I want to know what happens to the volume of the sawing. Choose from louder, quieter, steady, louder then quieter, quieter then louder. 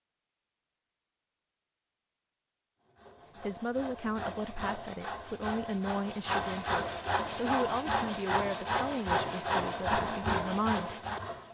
louder.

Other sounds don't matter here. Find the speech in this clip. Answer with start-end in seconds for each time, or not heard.
3.4-10.9.